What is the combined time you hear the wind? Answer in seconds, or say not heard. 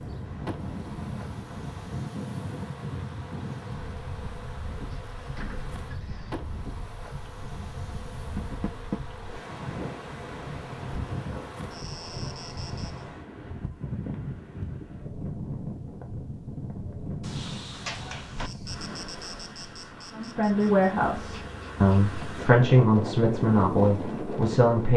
25 s.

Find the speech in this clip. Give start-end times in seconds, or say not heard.
20.1-24.9.